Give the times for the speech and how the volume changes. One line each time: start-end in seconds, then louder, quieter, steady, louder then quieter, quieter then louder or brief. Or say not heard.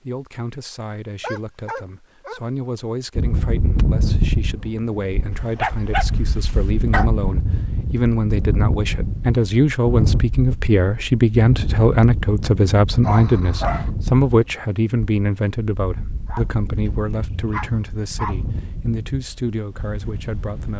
0.0-20.7 louder then quieter.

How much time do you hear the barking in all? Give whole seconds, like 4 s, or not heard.
5 s.